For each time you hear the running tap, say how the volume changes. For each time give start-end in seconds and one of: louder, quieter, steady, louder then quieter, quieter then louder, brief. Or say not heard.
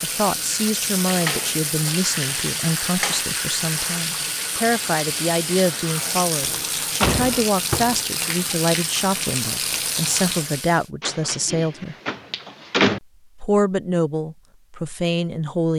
0.0-10.9 steady.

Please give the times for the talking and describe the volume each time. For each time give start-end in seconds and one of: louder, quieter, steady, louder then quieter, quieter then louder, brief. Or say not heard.
0.0-11.9 steady
13.3-15.7 brief.